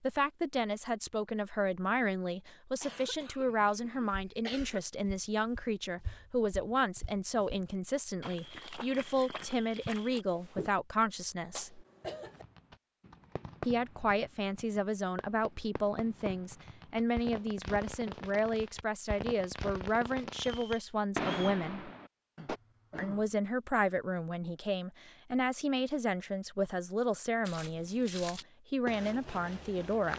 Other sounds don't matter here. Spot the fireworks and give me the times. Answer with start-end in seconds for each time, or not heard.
12.0-22.6.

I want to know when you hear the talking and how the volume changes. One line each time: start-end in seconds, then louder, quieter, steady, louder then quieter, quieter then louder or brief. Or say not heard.
0.0-11.8 steady
13.7-21.9 steady
22.9-30.1 steady.